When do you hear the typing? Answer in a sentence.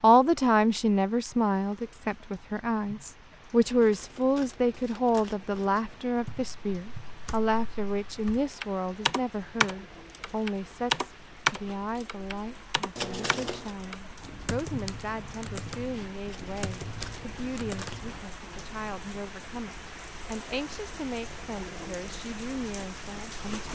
You can hear the typing from 6.2 to 18.2 s.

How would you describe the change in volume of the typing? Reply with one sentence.
The volume of the typing goes up, then down.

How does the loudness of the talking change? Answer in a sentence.
The volume of the talking goes down.